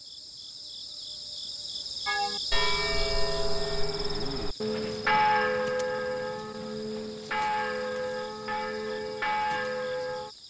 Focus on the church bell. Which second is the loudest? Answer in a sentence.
The loudest moment of the church bell is at 5 seconds.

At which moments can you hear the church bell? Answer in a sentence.
The church bell can be heard from 2.0 to 10.3 s.